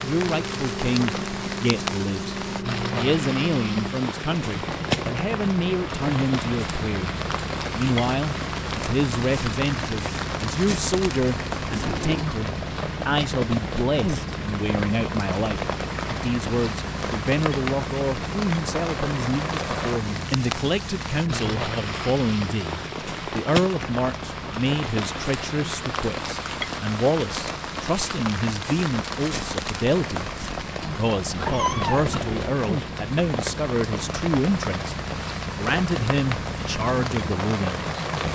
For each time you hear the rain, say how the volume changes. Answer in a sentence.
You can hear the rain from 0.0 to 38.2 s, at a steady volume.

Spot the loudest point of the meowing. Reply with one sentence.
The loudest moment of the meowing is at 32 seconds.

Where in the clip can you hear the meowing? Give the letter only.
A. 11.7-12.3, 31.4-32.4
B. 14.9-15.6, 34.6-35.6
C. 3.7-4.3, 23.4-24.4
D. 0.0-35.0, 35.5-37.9
A.